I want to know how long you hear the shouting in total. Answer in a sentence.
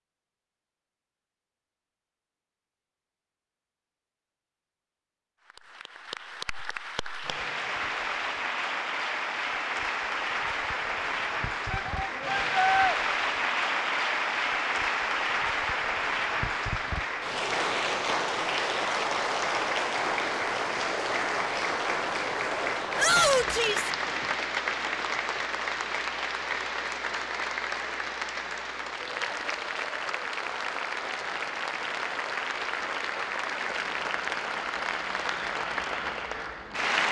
The shouting can be heard for 2 seconds in total.